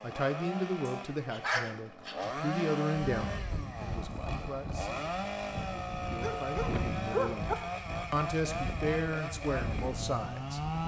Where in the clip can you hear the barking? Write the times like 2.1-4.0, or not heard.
0.8-2.4, 6.0-7.5.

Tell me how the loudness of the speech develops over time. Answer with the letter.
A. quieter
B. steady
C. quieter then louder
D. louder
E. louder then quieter
C.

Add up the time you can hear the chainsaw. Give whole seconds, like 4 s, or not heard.
11 s.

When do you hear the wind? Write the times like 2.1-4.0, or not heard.
3.1-10.8.